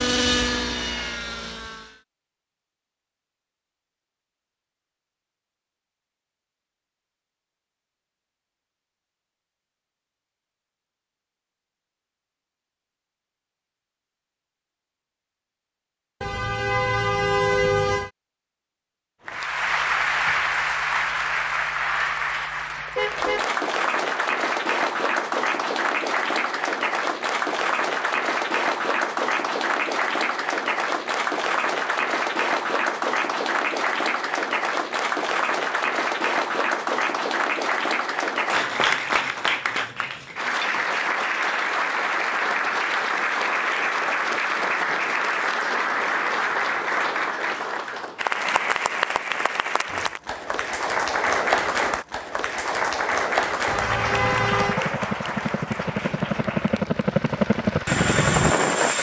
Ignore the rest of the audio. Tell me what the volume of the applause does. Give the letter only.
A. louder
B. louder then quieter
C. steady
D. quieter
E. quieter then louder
C.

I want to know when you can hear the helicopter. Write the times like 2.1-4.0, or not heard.
0.0-2.0, 54.0-58.9.